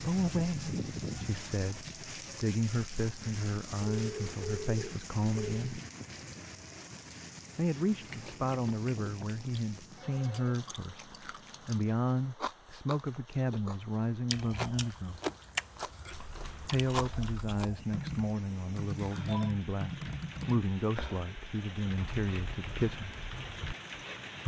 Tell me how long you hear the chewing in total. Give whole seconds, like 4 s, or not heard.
10 s.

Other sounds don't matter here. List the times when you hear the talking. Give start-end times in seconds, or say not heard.
0.0-5.8, 7.5-15.2, 16.7-23.1.